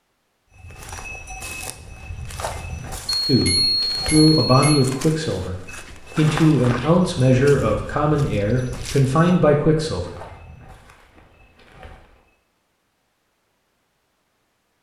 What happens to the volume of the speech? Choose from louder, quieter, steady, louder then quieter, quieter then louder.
quieter then louder.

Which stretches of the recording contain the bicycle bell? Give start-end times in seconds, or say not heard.
3.2-4.8.